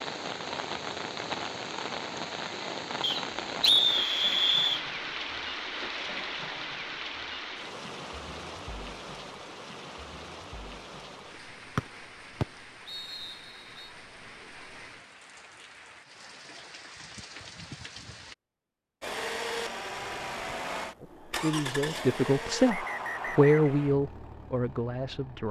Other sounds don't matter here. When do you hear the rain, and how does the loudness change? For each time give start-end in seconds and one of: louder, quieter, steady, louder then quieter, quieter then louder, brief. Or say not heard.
0.0-18.4 quieter.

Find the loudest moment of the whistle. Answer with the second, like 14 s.
4 s.